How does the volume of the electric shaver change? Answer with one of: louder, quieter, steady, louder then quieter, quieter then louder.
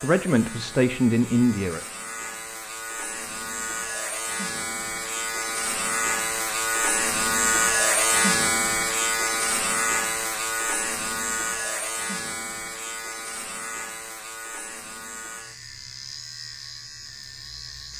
louder then quieter.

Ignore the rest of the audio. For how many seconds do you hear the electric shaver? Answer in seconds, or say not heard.
18 s.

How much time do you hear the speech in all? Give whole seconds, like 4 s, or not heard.
2 s.